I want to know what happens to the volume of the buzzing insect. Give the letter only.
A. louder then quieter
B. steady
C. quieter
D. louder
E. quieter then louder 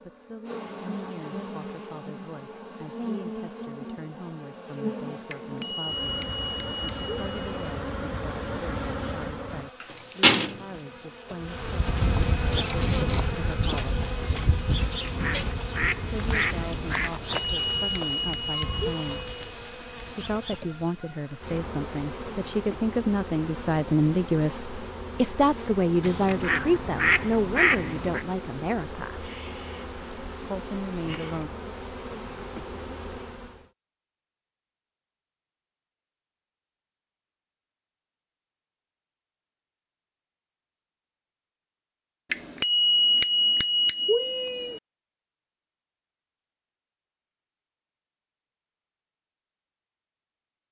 A.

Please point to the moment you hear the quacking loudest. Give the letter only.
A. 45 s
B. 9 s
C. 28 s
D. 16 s
C.